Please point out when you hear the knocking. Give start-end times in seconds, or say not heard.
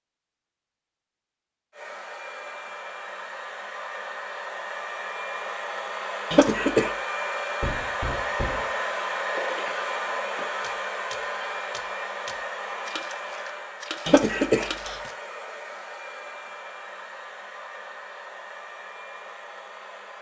7.6-8.7.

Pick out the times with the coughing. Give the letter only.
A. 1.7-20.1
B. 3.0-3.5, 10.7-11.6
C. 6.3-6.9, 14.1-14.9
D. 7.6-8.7
C.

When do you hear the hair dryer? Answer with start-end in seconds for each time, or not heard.
1.7-20.1.